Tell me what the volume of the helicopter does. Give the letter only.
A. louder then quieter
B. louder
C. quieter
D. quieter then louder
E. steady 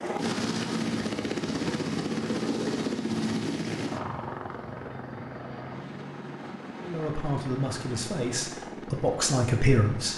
C.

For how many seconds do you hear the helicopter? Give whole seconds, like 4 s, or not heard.
10 s.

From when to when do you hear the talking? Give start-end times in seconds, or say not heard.
6.8-10.1.